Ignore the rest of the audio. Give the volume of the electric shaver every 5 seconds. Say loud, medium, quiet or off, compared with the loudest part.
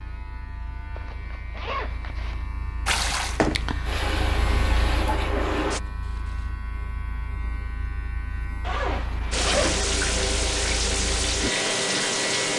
medium, medium, loud.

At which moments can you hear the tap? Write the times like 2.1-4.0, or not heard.
2.9-5.8, 9.3-12.5.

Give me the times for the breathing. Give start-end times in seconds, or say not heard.
not heard.